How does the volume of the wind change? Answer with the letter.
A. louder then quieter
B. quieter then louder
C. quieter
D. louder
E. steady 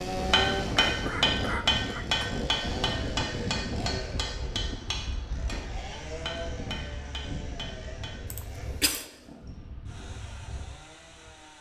C.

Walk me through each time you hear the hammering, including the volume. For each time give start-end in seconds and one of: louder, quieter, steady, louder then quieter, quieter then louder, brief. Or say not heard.
0.3-8.2 quieter.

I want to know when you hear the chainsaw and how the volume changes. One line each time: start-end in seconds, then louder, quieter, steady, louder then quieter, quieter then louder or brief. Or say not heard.
0.0-11.5 quieter.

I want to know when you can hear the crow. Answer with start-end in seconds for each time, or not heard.
not heard.